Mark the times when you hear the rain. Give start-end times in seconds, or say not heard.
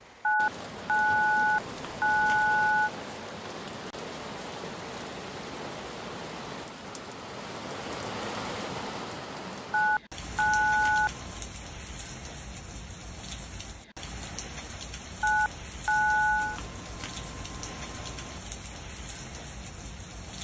0.0-20.3.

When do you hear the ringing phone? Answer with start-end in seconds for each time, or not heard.
0.2-2.9, 9.7-11.1, 15.2-16.6.